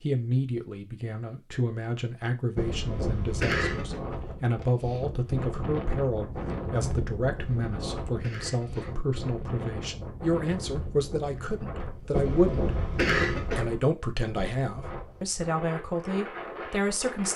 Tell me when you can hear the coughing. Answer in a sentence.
The coughing can be heard from 2.5 to 4.0 s, from 7.3 to 9.0 s and from 12.1 to 13.7 s.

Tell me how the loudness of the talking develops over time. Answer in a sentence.
The loudness of the talking stays about the same.